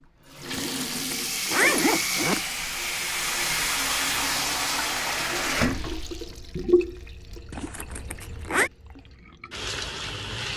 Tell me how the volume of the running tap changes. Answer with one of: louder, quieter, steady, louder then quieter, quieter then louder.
quieter.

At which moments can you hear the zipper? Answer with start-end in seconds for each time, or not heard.
0.5-2.4, 7.5-8.7.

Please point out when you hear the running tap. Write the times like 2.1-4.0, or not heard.
0.2-10.5.